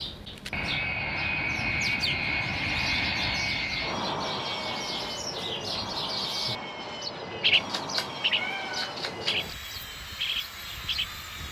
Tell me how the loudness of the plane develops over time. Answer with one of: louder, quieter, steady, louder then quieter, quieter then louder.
quieter.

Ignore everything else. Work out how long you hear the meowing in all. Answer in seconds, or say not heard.
2 s.